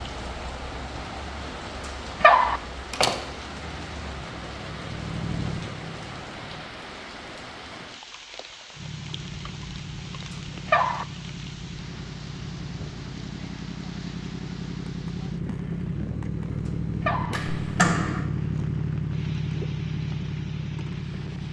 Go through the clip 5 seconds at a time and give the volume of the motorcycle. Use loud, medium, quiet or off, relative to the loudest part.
quiet, medium, medium, loud, loud.